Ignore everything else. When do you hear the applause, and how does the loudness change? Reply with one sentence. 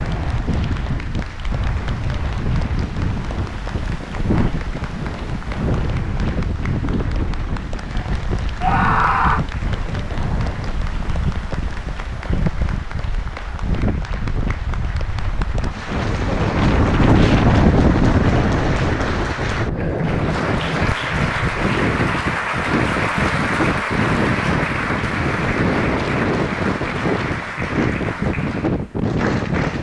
The applause can be heard from 0.0 to 29.7 s, getting louder.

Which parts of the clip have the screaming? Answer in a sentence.
You can hear the screaming from 8.6 to 9.4 s.